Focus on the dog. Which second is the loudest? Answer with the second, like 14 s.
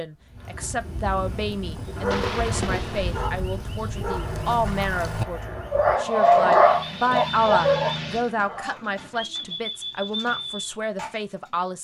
6 s.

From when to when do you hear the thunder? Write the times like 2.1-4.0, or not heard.
2.1-3.3.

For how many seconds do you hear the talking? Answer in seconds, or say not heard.
12 s.